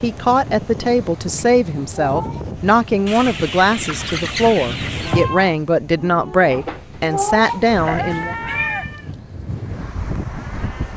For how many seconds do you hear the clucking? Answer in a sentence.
You can hear the clucking for 2 seconds altogether.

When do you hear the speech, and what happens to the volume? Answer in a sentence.
You can hear the speech from 0.0 to 8.3 s, at a steady volume.